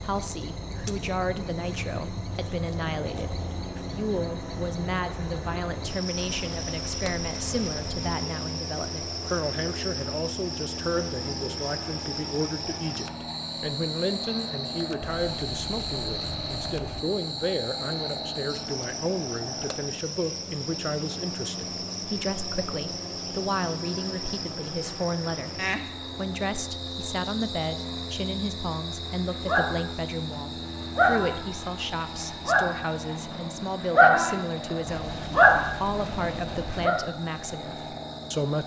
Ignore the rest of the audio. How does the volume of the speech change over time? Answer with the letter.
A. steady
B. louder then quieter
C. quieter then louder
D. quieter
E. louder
A.